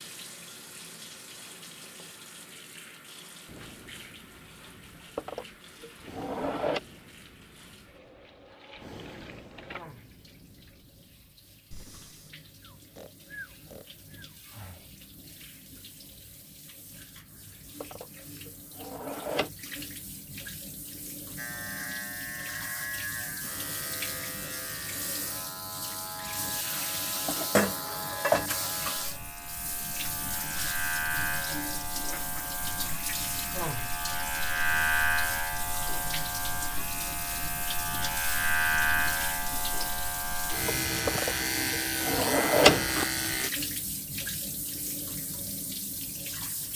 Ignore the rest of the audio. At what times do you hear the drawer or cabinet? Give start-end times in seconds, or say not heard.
5.2-6.8, 17.8-19.5, 41.0-43.0.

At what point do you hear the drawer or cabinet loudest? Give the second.
43 s.